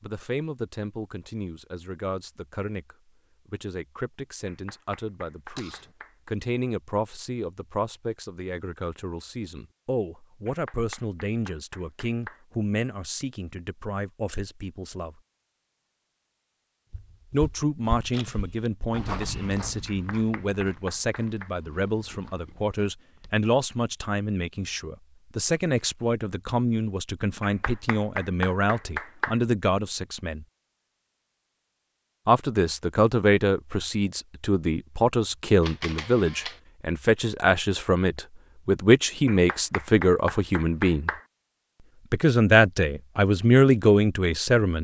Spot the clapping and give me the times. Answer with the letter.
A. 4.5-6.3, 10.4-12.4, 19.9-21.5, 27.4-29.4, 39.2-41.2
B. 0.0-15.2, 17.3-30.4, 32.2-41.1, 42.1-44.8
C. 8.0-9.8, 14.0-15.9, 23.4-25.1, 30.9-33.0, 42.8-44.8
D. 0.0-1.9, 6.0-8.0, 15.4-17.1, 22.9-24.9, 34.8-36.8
A.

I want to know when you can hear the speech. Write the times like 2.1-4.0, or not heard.
0.0-15.2, 17.3-30.4, 32.2-41.1, 42.1-44.8.